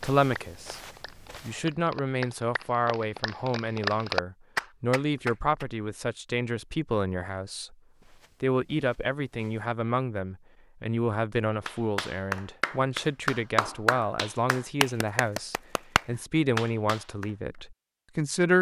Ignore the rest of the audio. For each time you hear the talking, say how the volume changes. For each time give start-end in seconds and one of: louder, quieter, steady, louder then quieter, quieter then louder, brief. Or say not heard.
0.0-0.8 brief
1.4-7.8 steady
8.4-18.5 steady.